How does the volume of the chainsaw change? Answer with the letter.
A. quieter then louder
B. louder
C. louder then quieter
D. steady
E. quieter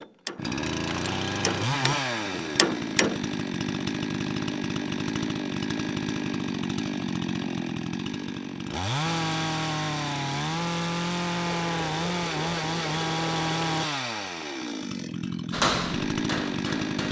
D.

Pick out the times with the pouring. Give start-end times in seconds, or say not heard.
11.7-13.8.